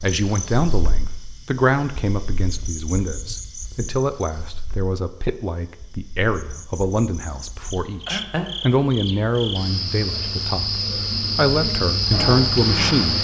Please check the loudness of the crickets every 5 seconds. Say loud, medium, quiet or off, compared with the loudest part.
quiet, medium, loud.